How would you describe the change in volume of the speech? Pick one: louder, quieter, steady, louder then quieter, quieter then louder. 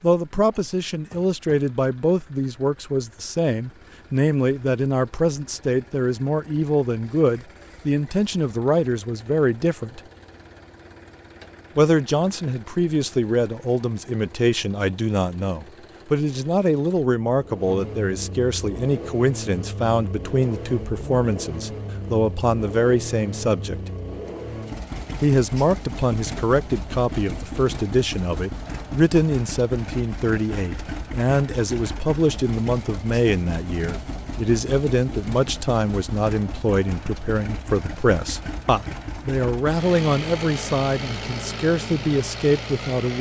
steady.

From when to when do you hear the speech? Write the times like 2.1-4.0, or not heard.
0.0-10.0, 11.8-23.8, 25.2-43.1.